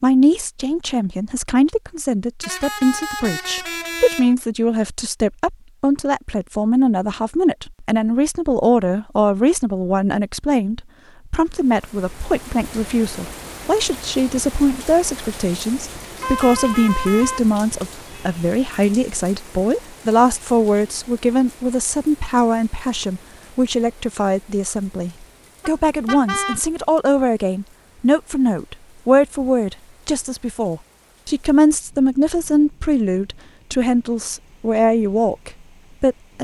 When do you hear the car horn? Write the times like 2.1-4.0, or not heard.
2.4-4.3, 16.2-18.4, 25.6-26.6.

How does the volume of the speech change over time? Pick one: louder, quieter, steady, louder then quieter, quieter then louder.
steady.